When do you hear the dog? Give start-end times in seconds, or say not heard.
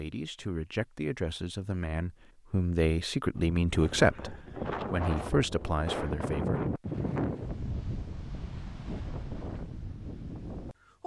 not heard.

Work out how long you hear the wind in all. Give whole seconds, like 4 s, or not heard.
8 s.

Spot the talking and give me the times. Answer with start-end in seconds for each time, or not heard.
0.0-6.8.